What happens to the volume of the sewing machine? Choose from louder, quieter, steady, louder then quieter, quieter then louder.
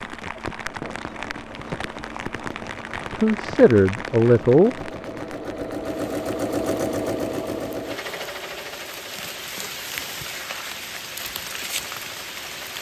louder then quieter.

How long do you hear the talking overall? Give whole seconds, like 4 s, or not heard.
2 s.